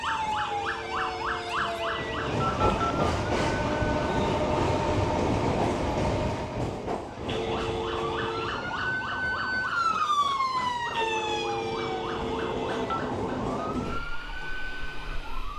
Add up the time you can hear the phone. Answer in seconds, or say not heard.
6 s.